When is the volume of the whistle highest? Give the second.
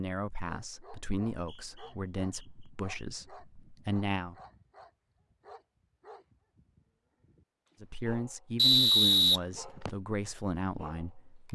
9 s.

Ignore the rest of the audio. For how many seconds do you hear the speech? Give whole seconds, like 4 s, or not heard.
8 s.